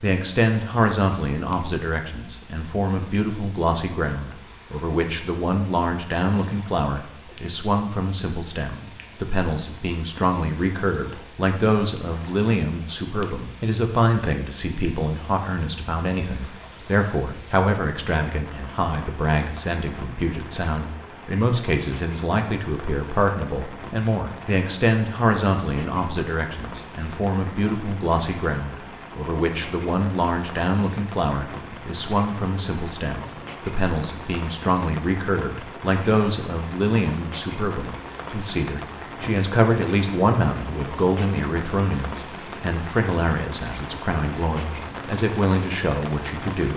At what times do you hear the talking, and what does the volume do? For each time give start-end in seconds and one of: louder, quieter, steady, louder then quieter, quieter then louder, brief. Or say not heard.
0.0-46.7 steady.